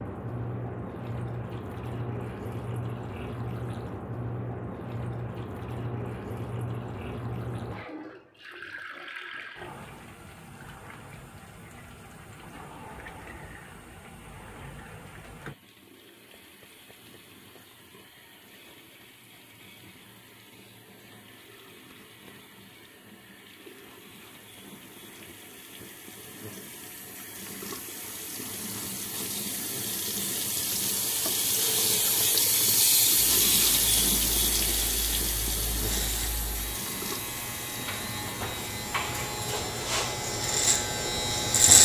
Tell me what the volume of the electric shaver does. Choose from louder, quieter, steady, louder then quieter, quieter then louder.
louder.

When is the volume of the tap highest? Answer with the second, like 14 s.
33 s.